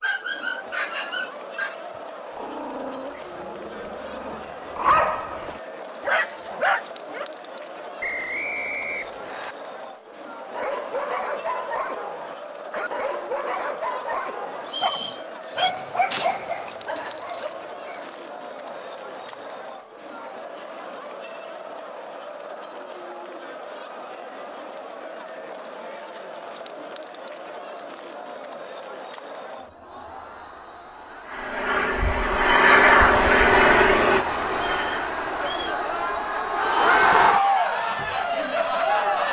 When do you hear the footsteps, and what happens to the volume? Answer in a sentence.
You can't hear the footsteps here.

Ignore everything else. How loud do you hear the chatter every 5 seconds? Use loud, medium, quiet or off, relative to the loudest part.
quiet, quiet, quiet, quiet, quiet, quiet, medium, loud.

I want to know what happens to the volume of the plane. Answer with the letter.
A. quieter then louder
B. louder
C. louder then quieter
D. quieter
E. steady
C.